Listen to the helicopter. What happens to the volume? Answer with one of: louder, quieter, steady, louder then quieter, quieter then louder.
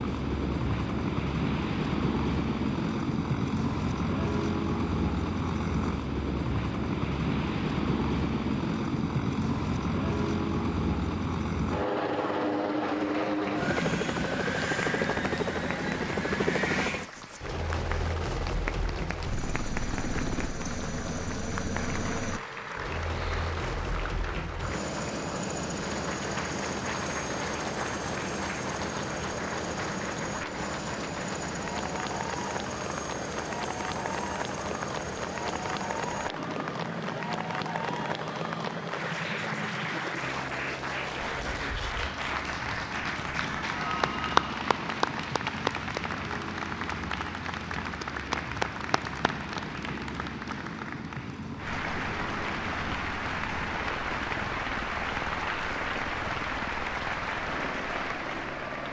quieter.